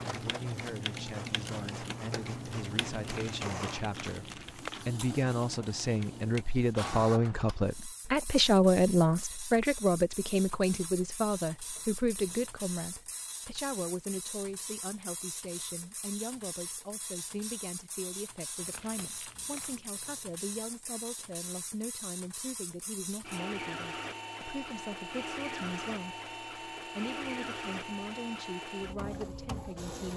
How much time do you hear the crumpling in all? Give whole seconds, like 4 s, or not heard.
3 s.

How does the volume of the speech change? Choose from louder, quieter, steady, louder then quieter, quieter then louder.
louder then quieter.